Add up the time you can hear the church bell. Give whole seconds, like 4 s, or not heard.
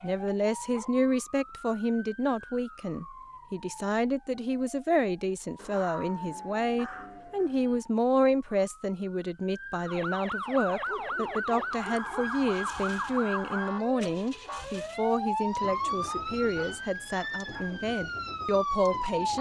not heard.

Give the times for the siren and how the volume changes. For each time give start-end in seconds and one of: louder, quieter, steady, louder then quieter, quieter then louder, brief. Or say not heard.
0.0-19.3 louder.